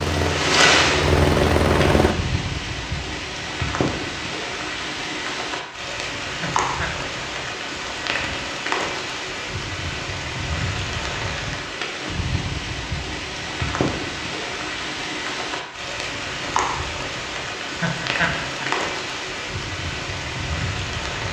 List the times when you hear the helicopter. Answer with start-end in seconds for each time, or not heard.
0.0-2.1.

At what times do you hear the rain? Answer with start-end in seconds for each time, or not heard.
0.0-21.2.